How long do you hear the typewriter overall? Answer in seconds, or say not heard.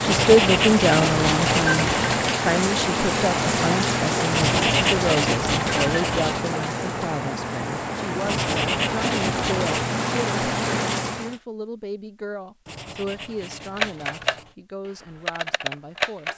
2 s.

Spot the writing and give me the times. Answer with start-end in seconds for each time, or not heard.
0.1-2.2, 4.3-6.5, 8.2-9.9, 12.7-14.6.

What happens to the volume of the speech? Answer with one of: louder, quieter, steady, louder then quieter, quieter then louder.
quieter.